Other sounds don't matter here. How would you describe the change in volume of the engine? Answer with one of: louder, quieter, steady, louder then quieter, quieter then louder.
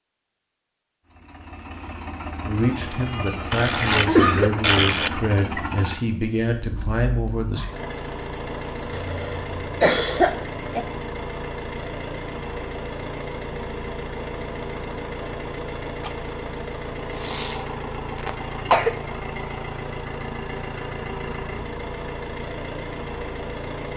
steady.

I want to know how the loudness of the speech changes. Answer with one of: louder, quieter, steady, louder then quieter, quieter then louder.
steady.